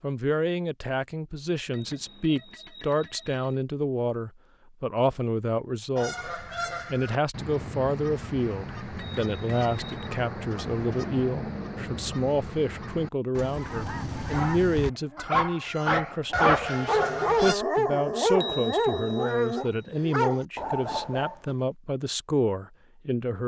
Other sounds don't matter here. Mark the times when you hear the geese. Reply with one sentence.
The geese can be heard from 6.0 to 17.6 s.